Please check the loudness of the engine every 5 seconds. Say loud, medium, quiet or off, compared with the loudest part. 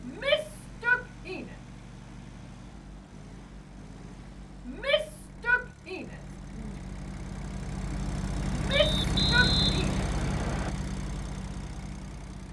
quiet, loud, loud.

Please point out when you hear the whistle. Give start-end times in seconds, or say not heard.
8.7-10.7.